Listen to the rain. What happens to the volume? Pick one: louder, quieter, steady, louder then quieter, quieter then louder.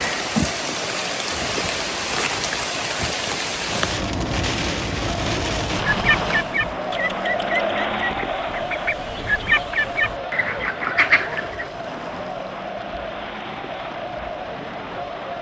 quieter.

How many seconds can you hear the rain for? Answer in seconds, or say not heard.
15 s.